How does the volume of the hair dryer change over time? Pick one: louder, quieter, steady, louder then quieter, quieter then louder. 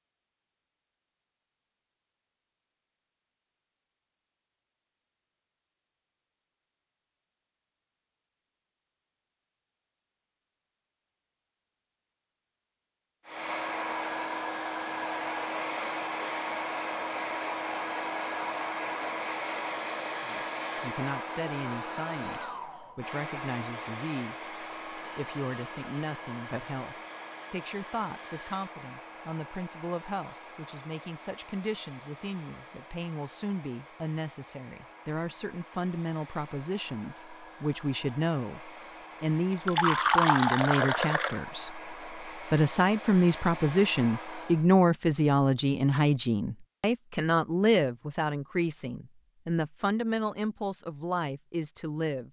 quieter then louder.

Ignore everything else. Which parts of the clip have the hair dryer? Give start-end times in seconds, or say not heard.
13.2-44.7.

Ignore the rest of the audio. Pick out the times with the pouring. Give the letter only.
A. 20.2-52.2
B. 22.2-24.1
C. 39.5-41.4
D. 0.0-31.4
C.